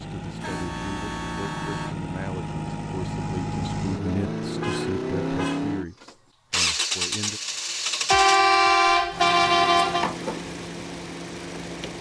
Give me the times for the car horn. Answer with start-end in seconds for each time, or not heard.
0.4-1.9, 4.6-5.7, 8.1-10.1.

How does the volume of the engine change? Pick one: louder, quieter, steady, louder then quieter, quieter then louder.
louder then quieter.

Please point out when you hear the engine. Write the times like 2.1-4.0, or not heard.
0.0-11.9.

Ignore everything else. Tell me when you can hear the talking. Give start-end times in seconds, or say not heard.
0.0-7.4.